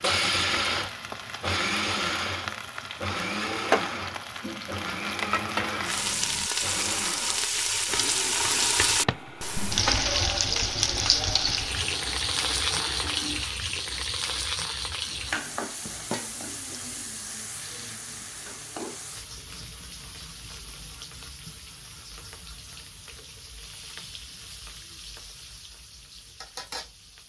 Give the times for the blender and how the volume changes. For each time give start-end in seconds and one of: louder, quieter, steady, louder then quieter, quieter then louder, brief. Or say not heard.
0.0-13.4 quieter.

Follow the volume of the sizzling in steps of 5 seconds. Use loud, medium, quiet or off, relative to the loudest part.
medium, loud, loud, medium, quiet, quiet.